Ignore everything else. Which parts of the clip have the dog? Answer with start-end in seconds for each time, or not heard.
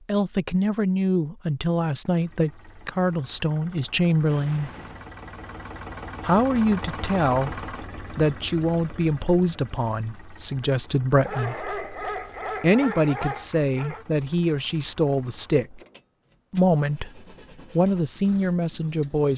11.2-14.1.